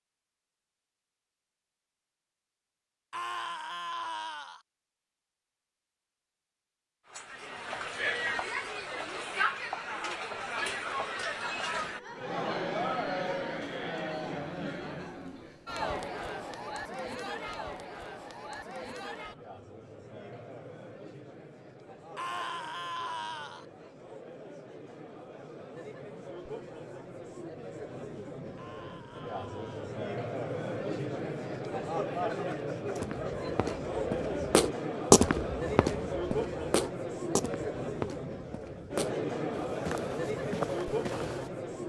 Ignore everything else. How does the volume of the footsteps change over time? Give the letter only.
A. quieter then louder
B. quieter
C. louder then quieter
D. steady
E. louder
C.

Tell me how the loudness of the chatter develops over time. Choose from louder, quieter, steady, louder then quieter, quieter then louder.
quieter then louder.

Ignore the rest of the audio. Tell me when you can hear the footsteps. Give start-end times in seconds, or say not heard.
33.0-41.5.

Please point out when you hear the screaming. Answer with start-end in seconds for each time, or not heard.
3.1-4.6, 22.1-23.6, 28.6-30.1.